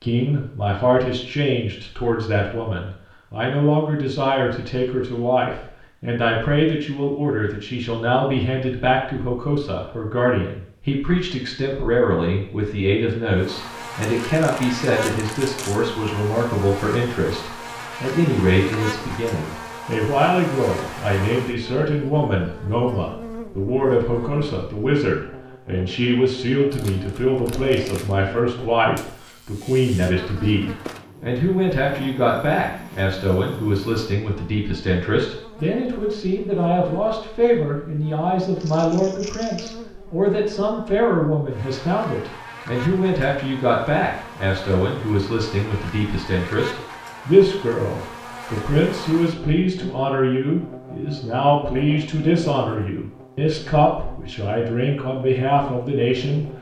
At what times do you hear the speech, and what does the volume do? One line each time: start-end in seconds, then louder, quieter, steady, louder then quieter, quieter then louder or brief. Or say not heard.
0.0-56.5 steady.